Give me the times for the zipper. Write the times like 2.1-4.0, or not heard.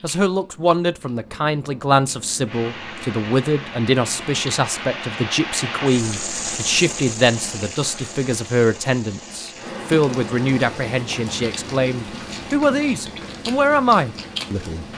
not heard.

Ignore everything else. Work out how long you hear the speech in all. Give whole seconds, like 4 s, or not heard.
15 s.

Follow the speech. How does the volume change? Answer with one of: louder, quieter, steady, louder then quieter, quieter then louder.
steady.